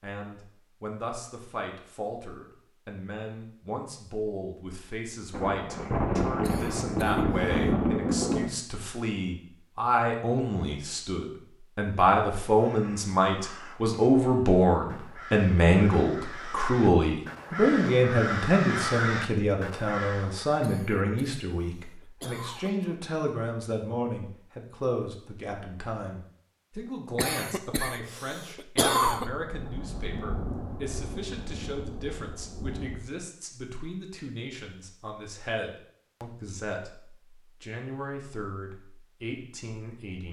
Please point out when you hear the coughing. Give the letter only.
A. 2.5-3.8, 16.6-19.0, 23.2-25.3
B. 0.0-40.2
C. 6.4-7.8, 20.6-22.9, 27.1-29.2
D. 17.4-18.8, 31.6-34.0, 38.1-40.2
C.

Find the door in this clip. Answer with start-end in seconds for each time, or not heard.
not heard.